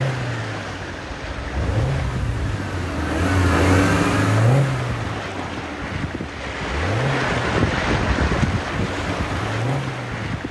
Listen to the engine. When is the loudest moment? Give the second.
4 s.